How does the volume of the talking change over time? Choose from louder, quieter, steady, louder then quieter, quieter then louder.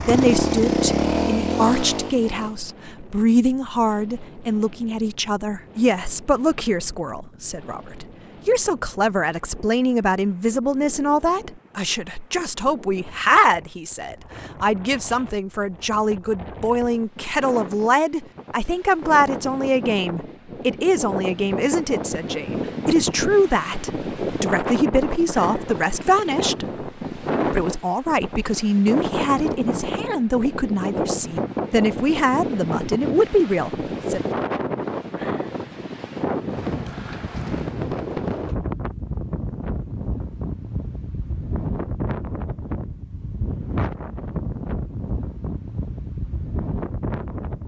steady.